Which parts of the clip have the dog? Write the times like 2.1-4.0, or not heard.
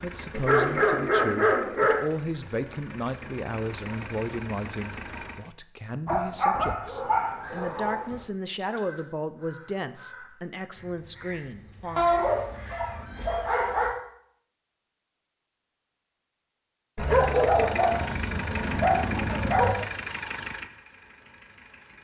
0.3-2.0, 6.0-8.2, 11.9-13.9, 16.9-19.9.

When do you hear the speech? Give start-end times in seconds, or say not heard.
0.0-12.1.